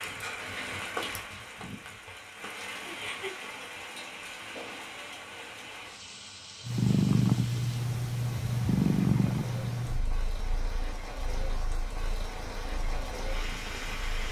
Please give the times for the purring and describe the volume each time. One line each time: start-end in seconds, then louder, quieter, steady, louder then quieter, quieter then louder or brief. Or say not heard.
6.7-14.2 quieter.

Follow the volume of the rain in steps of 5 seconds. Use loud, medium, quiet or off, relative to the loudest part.
loud, medium, loud.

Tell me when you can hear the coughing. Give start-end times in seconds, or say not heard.
4.1-6.0.